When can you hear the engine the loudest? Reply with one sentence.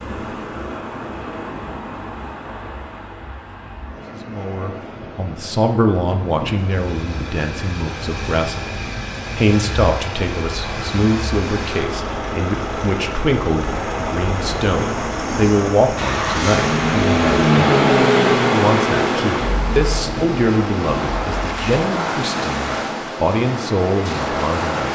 The loudest moment of the engine is at 18 seconds.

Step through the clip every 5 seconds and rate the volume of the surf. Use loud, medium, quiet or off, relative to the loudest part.
medium, medium, medium, loud, loud.